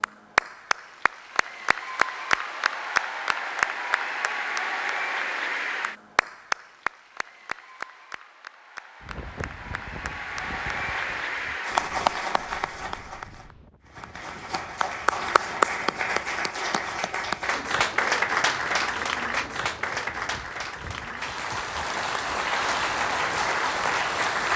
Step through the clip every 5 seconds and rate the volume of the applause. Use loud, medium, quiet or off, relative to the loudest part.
loud, medium, loud, loud, loud.